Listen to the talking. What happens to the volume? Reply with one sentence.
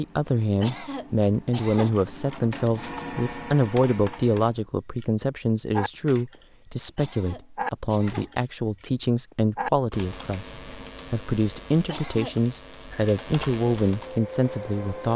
The volume of the talking stays about the same.